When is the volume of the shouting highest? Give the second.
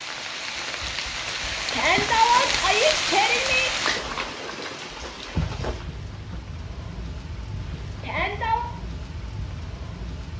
2 s.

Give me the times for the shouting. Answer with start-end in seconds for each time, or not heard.
1.7-3.7, 8.0-8.7.